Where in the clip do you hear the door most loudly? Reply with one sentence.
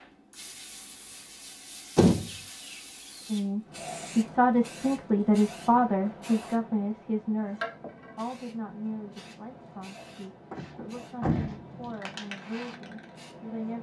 The loudest moment of the door is at 2 seconds.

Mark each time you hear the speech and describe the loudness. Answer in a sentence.
You can hear the speech from 3.2 to 13.7 s, getting quieter.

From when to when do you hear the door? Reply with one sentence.
You can hear the door from 1.9 to 3.4 s and from 10.5 to 12.0 s.